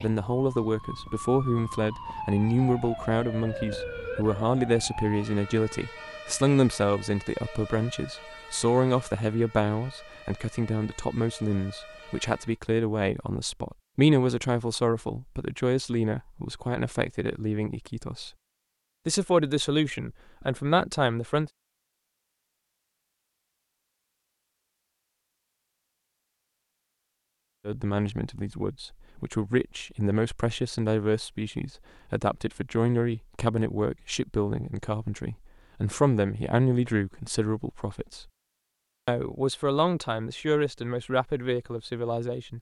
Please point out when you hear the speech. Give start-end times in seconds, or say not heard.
0.0-18.3, 19.1-21.5, 27.6-38.2, 39.0-42.5.